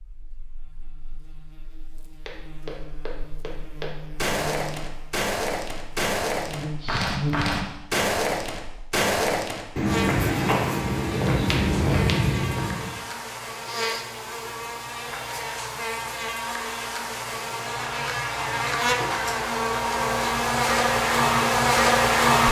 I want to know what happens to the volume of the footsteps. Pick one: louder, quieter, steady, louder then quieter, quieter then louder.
louder.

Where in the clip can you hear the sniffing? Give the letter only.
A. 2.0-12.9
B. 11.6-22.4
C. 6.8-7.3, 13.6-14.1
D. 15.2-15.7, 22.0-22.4
C.